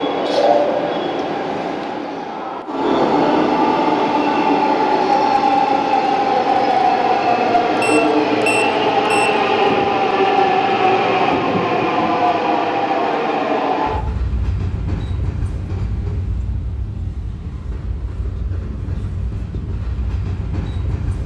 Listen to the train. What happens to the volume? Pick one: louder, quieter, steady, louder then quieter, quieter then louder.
quieter.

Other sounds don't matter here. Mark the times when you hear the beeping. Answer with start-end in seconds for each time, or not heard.
7.8-9.3.